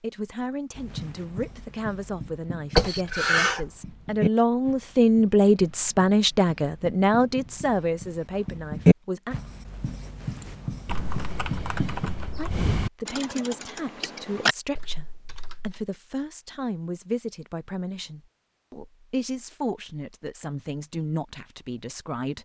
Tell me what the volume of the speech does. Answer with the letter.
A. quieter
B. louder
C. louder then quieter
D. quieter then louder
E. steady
C.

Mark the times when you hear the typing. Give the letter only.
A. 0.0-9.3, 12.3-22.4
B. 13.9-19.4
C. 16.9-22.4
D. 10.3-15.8
D.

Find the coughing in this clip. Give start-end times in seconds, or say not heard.
2.8-3.7.